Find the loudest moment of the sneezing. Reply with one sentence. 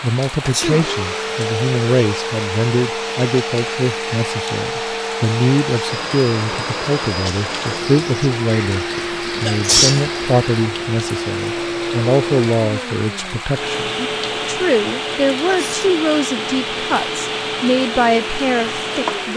The loudest moment of the sneezing is at 10 seconds.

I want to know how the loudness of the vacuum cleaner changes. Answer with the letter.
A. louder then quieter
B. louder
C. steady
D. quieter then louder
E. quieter
C.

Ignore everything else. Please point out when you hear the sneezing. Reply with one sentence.
You can hear the sneezing from 0.4 to 0.9 s, from 8.8 to 10.2 s and from 15.4 to 15.9 s.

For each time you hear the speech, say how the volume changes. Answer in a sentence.
The speech can be heard from 0.0 to 19.3 s, at a steady volume.